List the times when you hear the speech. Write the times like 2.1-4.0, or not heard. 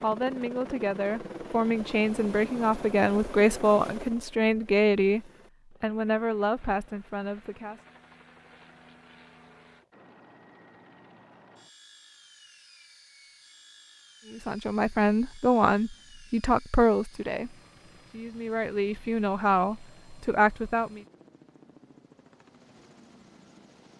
0.0-7.8, 14.3-21.0.